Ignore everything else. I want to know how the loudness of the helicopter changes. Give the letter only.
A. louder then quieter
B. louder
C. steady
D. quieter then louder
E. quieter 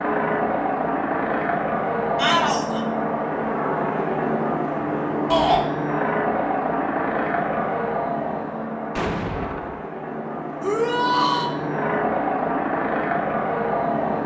D.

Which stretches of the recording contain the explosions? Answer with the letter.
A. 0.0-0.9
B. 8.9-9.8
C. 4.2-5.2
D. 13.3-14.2
B.